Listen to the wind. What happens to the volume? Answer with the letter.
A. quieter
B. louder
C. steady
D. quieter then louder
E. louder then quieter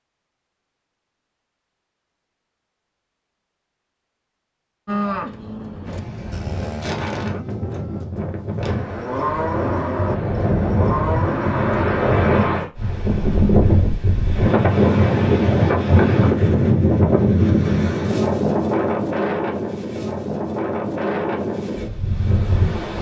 E.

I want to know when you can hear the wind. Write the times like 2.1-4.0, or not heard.
5.8-22.9.